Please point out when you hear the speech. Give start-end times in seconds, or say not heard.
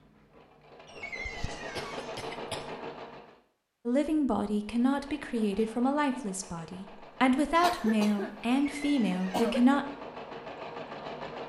3.9-9.8.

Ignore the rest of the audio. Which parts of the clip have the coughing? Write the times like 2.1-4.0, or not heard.
1.2-2.8, 7.3-9.7.